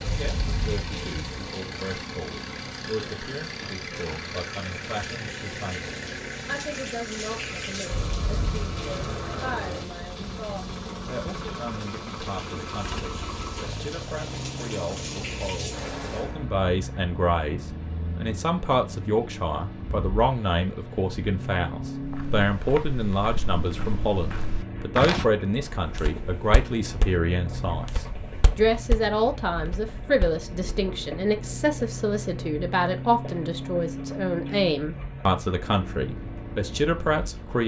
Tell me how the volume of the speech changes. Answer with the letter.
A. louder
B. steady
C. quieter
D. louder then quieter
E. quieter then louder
A.